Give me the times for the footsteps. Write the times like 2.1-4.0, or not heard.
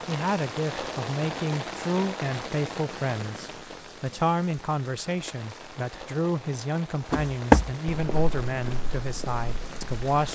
7.1-10.2.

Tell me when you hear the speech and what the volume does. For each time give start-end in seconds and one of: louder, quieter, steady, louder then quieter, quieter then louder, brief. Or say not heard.
0.1-10.3 steady.